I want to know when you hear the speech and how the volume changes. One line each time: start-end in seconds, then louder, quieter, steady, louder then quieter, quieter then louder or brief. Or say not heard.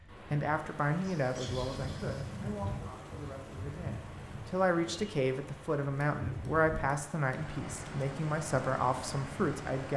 0.3-9.9 quieter then louder.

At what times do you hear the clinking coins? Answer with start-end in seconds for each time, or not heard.
not heard.